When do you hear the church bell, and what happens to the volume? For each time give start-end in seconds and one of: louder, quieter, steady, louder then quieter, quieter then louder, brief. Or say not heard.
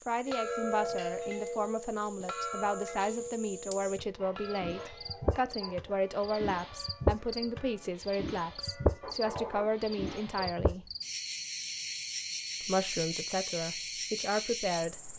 0.2-9.2 quieter.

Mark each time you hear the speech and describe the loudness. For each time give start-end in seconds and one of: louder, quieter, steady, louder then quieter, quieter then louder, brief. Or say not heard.
0.1-10.9 steady
12.6-15.1 brief.